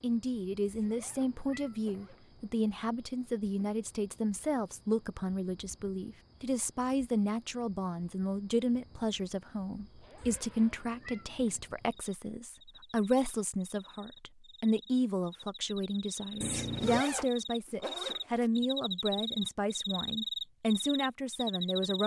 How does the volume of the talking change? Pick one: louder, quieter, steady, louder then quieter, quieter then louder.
steady.